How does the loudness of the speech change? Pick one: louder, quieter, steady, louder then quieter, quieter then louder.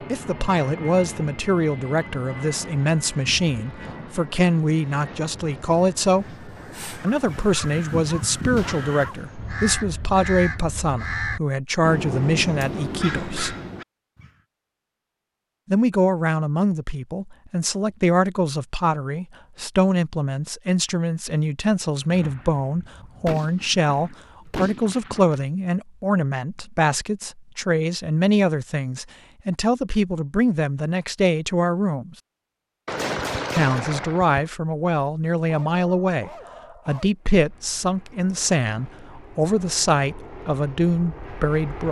steady.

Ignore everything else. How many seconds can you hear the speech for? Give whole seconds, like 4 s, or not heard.
38 s.